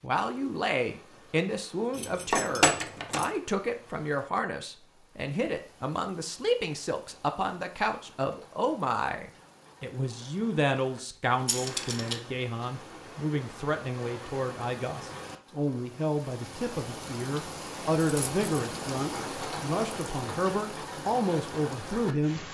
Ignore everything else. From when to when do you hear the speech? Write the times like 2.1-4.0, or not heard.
0.0-22.4.